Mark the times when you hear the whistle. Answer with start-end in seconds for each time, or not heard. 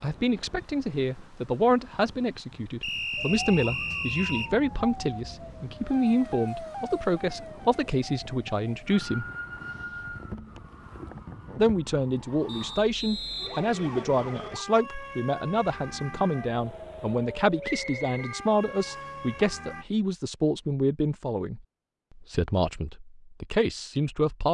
2.8-4.5, 12.4-14.5, 17.6-19.1.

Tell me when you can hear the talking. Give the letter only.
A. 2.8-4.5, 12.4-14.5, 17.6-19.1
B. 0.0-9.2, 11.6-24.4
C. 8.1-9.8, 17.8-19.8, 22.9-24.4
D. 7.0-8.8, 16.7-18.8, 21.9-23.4
B.